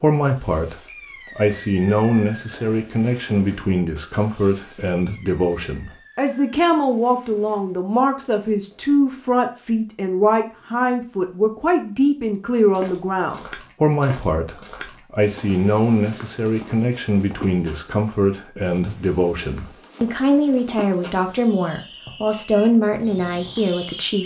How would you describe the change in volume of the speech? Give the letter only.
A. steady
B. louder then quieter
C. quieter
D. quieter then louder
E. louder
A.